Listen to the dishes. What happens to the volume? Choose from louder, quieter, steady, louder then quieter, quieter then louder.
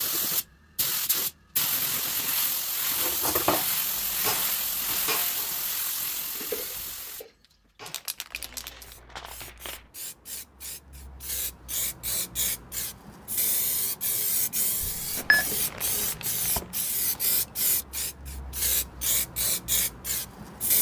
quieter.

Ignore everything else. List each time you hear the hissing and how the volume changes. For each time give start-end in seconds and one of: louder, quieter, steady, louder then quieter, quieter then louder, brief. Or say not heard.
0.0-20.7 quieter then louder.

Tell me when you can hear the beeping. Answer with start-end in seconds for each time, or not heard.
14.8-15.4.